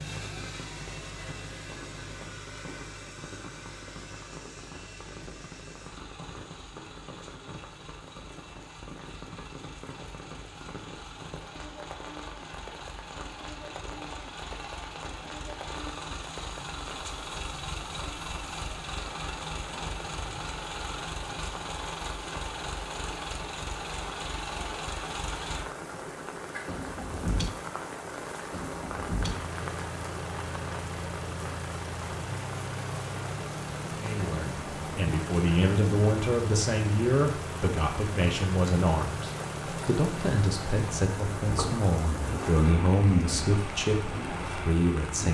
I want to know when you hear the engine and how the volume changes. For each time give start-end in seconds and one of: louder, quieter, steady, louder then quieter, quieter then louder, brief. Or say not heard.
0.0-45.2 louder.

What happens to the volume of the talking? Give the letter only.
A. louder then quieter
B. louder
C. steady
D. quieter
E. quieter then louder
C.